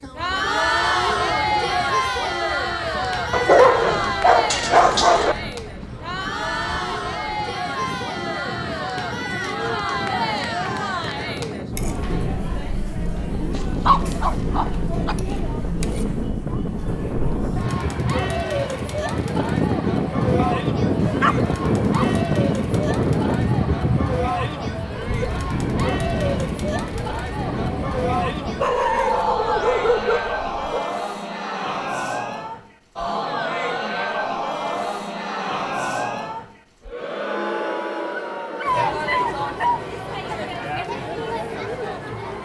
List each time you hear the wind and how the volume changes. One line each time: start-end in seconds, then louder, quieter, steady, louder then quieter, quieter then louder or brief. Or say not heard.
0.0-28.8 louder.